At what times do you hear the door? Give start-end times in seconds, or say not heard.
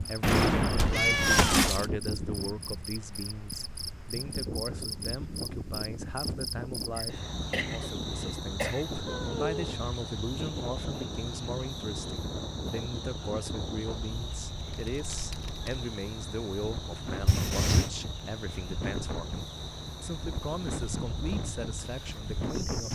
not heard.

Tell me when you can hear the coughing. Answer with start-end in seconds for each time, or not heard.
7.0-8.8.